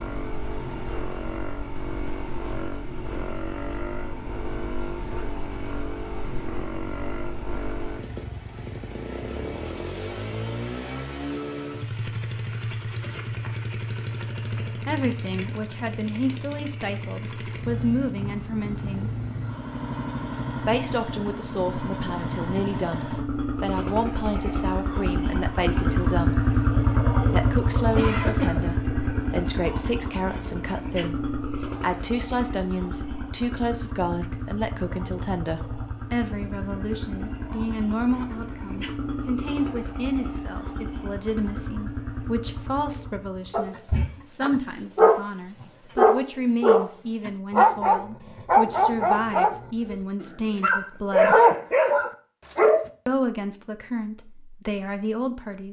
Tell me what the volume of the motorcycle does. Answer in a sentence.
The loudness of the motorcycle goes up, then down.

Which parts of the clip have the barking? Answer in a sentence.
The barking can be heard from 43.5 to 52.9 s.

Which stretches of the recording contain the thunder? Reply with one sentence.
The thunder can't be heard in this clip.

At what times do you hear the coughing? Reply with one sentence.
The coughing can be heard from 27.9 to 28.8 s.